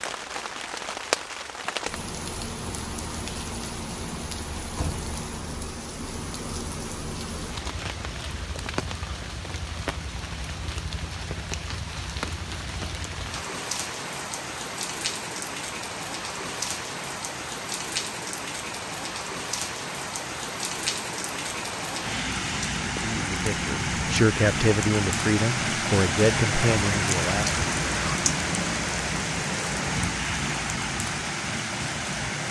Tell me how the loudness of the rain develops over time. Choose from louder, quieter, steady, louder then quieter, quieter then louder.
louder.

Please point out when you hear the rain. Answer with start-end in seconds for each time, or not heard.
0.0-32.4.